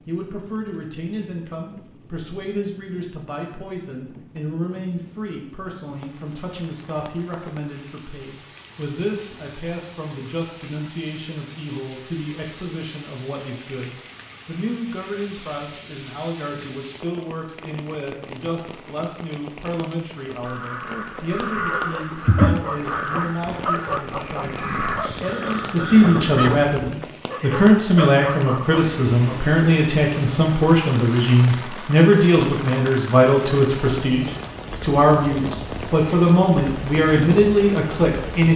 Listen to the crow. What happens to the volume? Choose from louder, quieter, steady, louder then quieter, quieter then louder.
louder then quieter.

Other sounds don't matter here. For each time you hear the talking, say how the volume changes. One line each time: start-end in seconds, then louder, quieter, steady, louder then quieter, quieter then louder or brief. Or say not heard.
0.1-38.5 louder.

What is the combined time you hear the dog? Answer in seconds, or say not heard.
7 s.